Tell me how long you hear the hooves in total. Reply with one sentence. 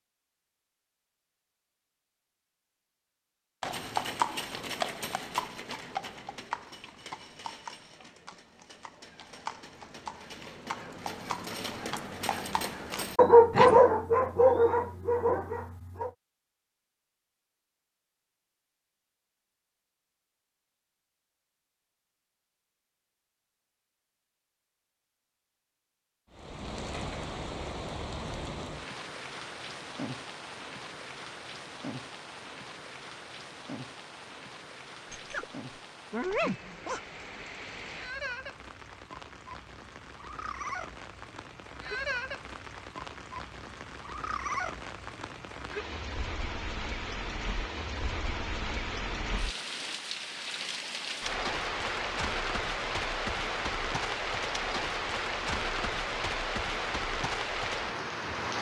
The hooves can be heard for 10 seconds in total.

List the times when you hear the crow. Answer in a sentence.
The crow can't be heard in this clip.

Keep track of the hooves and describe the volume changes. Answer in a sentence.
The volume of the hooves goes down, then up.